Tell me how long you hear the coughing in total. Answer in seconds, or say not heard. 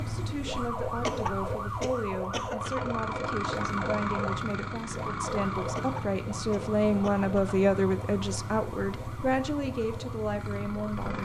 4 s.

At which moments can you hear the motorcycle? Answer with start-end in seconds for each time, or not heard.
0.0-11.1.